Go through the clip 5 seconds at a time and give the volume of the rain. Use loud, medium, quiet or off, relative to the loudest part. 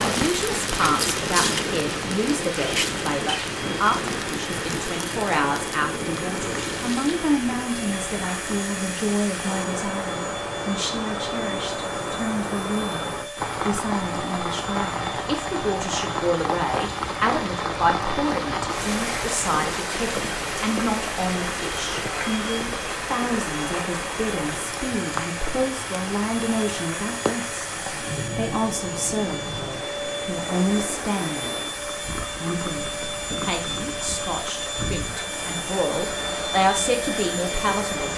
loud, medium, loud, loud, loud, medium, medium, medium.